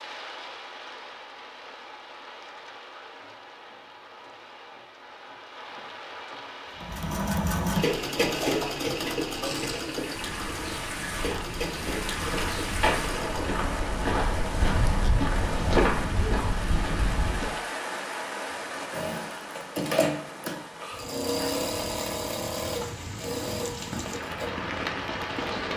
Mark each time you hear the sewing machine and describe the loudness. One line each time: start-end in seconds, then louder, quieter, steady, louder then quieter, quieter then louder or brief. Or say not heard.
6.8-13.5 quieter
18.9-25.7 quieter.